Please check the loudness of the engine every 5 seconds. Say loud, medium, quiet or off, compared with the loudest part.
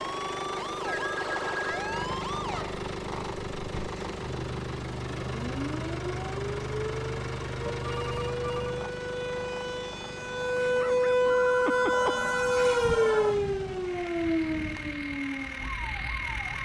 loud, loud, medium, loud.